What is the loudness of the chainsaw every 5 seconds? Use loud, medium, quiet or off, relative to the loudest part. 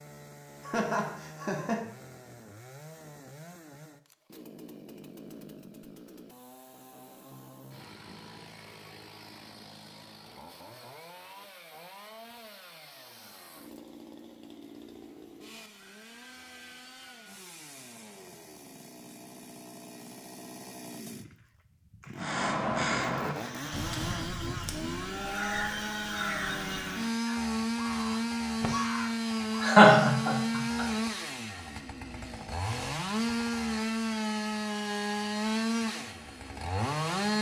quiet, quiet, quiet, quiet, medium, loud, loud, loud.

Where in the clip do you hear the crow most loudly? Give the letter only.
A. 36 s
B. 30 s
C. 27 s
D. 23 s
D.